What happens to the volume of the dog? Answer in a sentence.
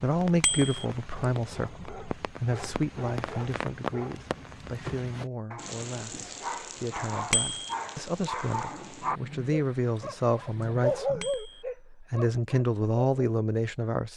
The volume of the dog goes up.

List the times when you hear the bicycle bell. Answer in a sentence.
You can hear the bicycle bell from 0.4 to 0.8 s, from 7.3 to 7.8 s and from 11.2 to 11.7 s.